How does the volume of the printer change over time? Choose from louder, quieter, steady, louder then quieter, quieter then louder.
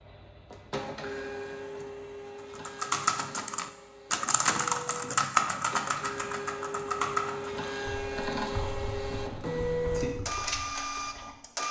quieter then louder.